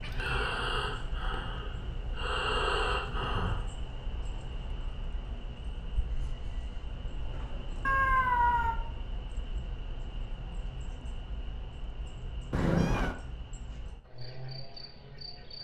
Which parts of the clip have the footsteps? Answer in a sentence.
You can't hear the footsteps here.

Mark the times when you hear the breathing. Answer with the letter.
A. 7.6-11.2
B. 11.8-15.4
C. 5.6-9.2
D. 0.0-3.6
D.